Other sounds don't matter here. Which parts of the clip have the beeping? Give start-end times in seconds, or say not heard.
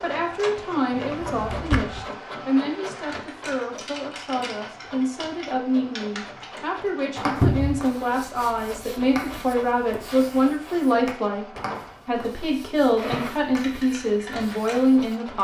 not heard.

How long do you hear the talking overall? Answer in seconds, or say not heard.
15 s.